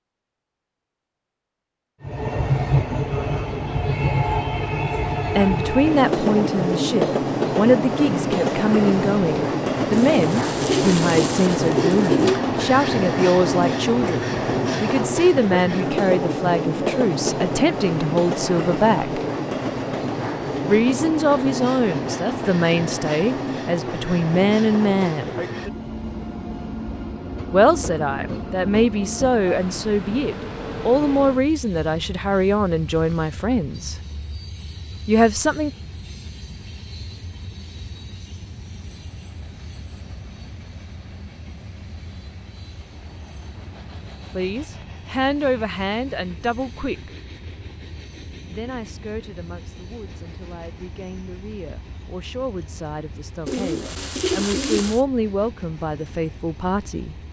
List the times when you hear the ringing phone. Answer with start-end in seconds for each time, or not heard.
not heard.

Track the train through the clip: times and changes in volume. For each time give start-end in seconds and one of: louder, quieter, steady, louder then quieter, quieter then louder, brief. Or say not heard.
2.0-57.2 quieter.